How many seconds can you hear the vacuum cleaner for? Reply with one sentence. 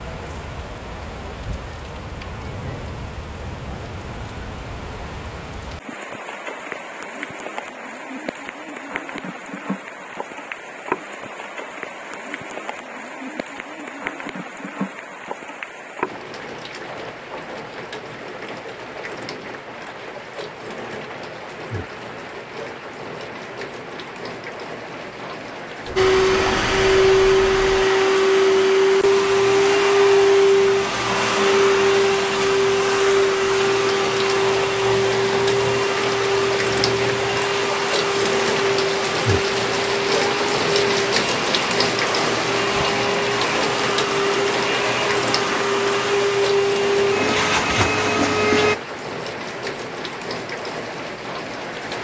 You can hear the vacuum cleaner for 23 seconds altogether.